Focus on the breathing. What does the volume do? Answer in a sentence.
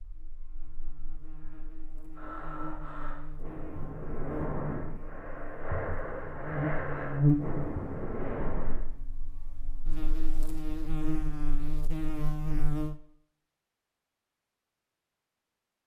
The volume of the breathing goes up.